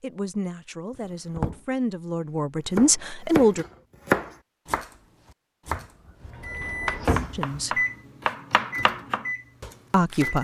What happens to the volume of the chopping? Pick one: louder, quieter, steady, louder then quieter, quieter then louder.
quieter.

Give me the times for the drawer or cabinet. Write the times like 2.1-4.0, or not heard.
0.9-1.6, 5.7-7.4.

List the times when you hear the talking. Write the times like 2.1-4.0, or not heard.
0.0-3.6, 7.3-7.8, 9.9-10.3.